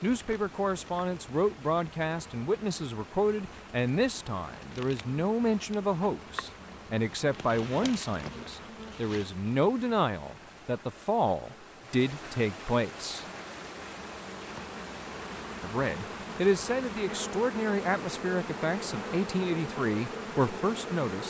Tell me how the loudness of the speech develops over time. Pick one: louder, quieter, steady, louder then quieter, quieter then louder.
steady.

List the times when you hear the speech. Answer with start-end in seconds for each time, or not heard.
0.0-13.2, 15.6-21.2.